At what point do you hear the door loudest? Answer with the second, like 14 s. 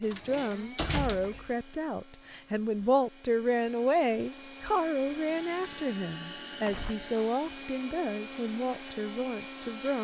1 s.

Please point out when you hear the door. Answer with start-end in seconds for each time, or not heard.
0.0-1.5, 6.7-7.1.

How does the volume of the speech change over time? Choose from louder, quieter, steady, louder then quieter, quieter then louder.
louder then quieter.